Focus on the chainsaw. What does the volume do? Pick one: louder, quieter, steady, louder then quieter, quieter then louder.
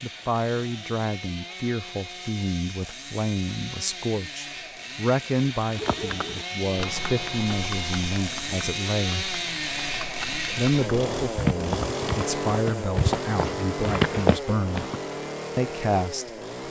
louder.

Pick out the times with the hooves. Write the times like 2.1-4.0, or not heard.
5.7-15.0.